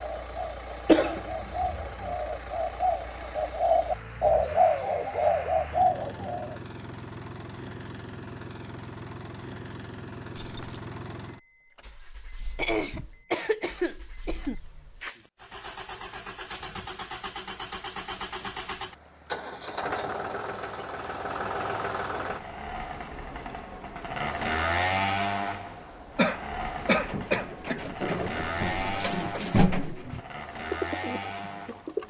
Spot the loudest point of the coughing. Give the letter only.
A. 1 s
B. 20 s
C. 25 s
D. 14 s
A.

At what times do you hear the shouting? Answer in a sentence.
The shouting can't be heard in this clip.